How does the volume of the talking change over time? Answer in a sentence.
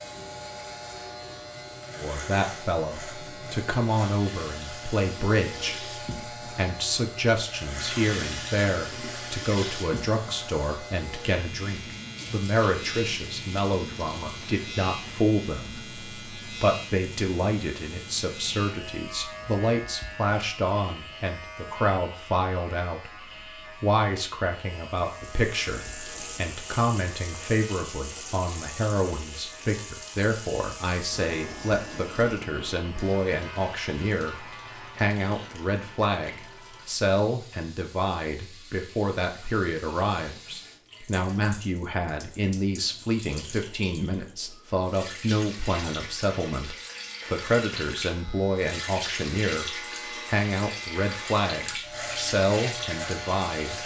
The volume of the talking stays about the same.